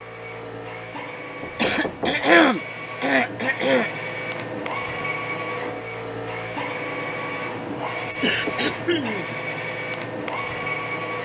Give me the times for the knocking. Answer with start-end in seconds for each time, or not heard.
1.4-2.2, 8.1-8.8.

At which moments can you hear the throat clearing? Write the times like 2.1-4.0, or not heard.
1.6-3.9, 8.2-9.3.